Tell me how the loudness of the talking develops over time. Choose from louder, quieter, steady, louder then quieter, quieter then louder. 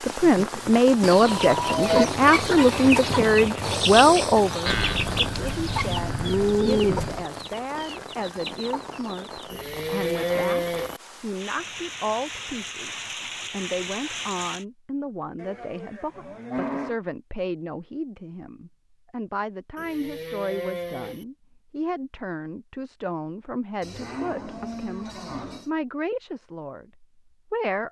quieter.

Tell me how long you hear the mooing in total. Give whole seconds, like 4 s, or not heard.
10 s.